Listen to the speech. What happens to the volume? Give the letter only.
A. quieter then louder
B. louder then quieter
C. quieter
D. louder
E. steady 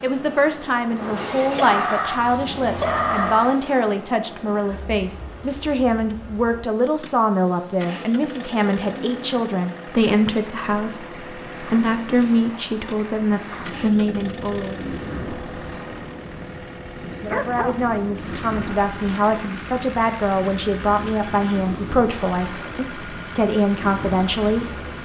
E.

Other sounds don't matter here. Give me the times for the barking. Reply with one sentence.
You can hear the barking from 1.5 to 3.5 s and from 17.2 to 17.8 s.